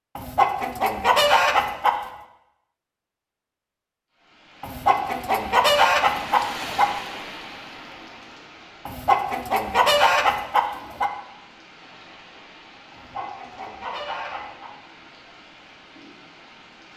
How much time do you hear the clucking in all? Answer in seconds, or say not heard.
8 s.